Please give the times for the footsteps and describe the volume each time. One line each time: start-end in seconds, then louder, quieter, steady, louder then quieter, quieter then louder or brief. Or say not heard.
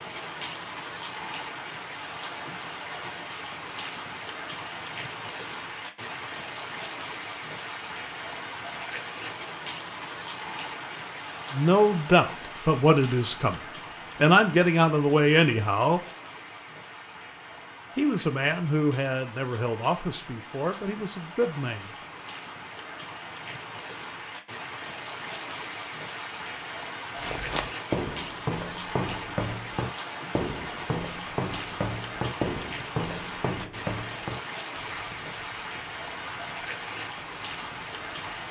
27.1-38.4 quieter.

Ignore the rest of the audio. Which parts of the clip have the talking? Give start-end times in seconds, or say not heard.
11.5-13.6, 14.2-16.0, 17.9-21.9.